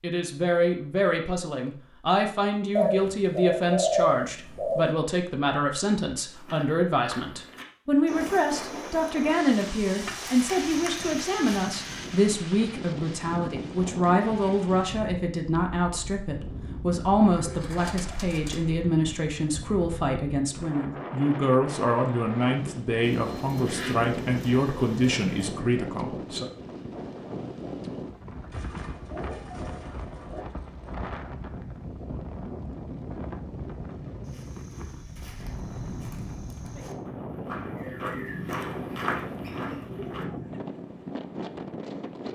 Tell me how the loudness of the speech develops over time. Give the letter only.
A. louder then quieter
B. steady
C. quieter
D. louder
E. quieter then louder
B.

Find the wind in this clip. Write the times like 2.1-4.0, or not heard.
8.1-42.3.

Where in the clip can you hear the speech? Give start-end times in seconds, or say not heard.
0.0-26.4.